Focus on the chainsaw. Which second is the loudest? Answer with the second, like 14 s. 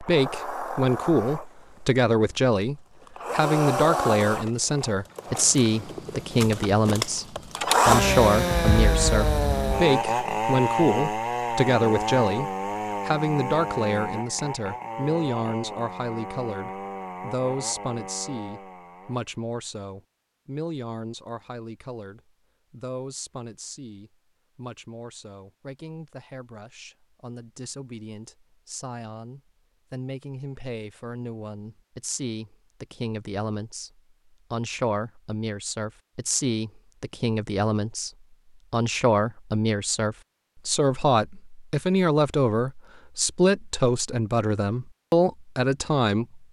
8 s.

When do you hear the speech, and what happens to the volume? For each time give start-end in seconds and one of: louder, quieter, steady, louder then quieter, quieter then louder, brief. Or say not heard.
0.0-46.4 quieter then louder.